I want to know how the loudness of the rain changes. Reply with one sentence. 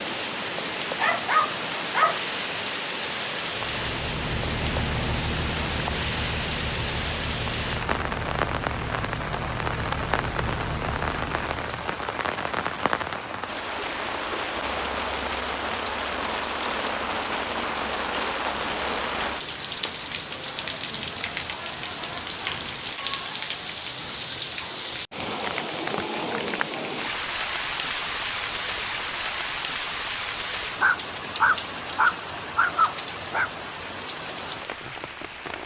The loudness of the rain stays about the same.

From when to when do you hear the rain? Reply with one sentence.
You can hear the rain from 0.0 to 35.6 s.